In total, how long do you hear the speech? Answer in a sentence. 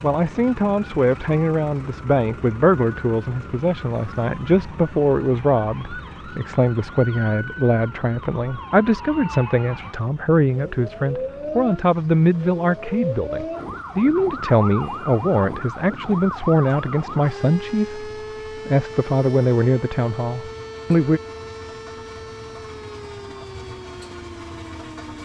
The speech can be heard for 21 seconds in total.